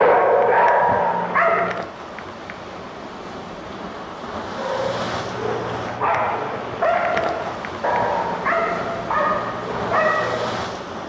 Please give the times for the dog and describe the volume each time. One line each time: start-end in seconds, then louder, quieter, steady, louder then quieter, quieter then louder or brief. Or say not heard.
0.0-1.9 brief
4.5-10.8 louder.